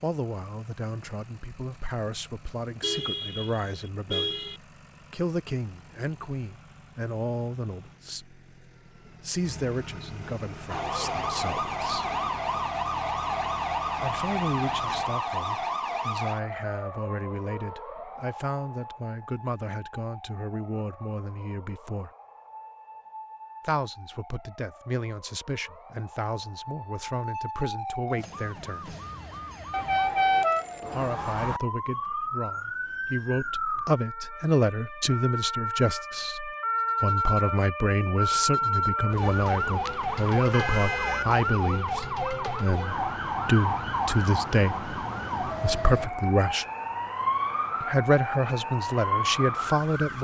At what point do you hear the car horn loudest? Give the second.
30 s.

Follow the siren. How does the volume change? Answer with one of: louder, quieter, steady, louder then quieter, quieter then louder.
quieter then louder.